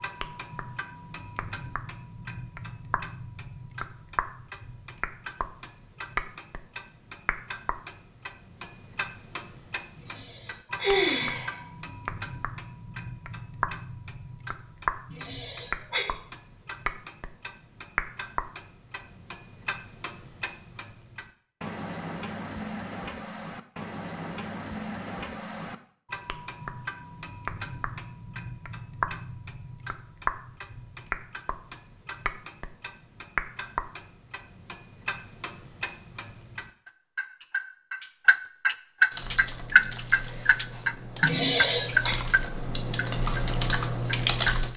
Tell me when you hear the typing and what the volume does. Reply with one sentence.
You can hear the typing from 39.1 to 44.7 s, getting louder.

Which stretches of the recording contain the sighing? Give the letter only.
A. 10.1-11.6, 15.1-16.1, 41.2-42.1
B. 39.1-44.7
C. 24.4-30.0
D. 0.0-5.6
A.